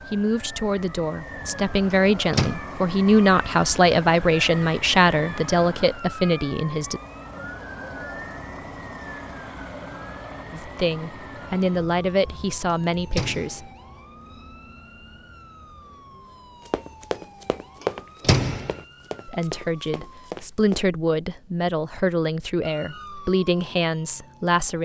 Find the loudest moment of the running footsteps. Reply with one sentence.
The loudest moment of the running footsteps is at 18 seconds.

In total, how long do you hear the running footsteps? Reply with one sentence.
You can hear the running footsteps for 4 seconds altogether.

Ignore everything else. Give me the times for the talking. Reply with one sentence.
You can hear the talking from 0.1 to 7.0 s, from 10.5 to 13.7 s and from 19.2 to 24.8 s.